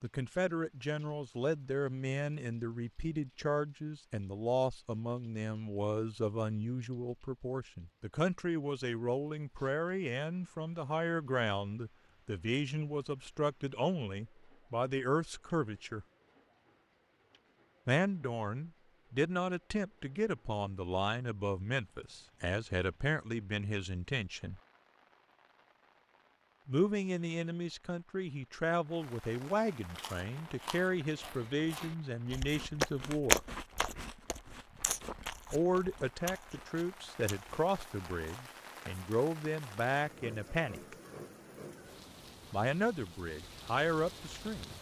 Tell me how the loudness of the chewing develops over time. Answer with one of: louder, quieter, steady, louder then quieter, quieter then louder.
louder then quieter.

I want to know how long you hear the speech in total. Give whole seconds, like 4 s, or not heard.
37 s.